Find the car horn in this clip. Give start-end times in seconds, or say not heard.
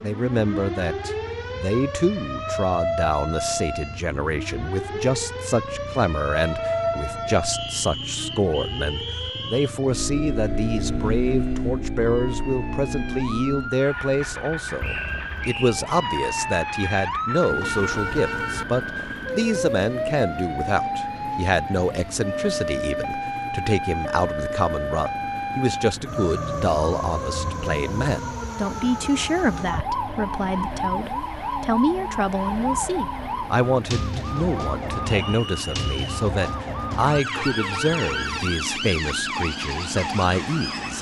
6.3-7.4, 17.6-18.6, 37.4-38.4.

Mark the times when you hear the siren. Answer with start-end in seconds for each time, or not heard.
0.0-40.9.